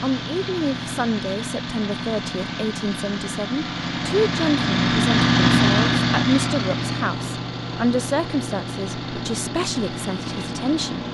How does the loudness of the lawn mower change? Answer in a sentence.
The loudness of the lawn mower goes up, then down.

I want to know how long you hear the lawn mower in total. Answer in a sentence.
You can hear the lawn mower for 11 seconds altogether.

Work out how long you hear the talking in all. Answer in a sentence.
The talking can be heard for 11 seconds in total.